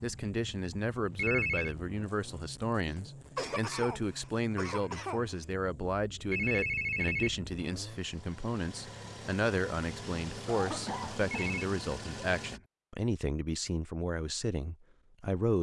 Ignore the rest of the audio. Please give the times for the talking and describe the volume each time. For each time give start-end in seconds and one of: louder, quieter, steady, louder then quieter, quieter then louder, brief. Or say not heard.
0.0-15.5 steady.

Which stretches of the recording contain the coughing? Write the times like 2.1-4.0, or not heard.
2.9-5.5, 10.4-11.6.